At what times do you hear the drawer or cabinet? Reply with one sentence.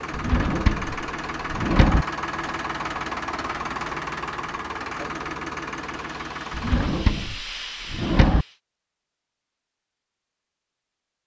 The drawer or cabinet can be heard from 0.1 to 2.0 s and from 6.5 to 8.4 s.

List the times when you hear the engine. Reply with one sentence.
The engine can be heard from 0.0 to 7.0 s.